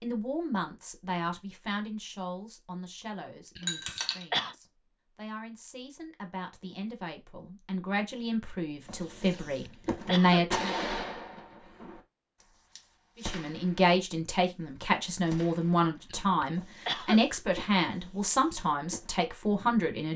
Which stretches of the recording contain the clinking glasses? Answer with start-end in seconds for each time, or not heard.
3.6-4.2.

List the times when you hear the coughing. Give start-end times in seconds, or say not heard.
3.5-4.5, 9.3-10.4, 16.1-17.2.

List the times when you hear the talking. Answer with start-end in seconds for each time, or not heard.
0.0-10.8, 13.2-20.1.